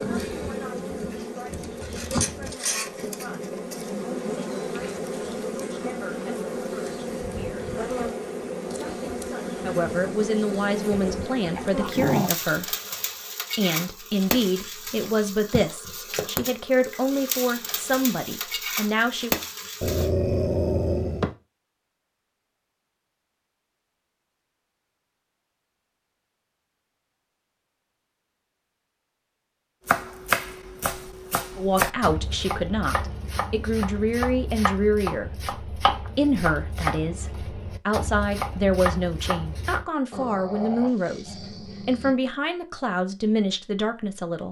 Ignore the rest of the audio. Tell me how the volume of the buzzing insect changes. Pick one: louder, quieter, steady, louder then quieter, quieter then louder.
steady.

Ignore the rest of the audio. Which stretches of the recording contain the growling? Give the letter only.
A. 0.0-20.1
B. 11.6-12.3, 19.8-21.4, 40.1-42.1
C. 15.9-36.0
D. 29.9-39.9
B.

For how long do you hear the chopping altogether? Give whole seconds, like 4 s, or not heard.
10 s.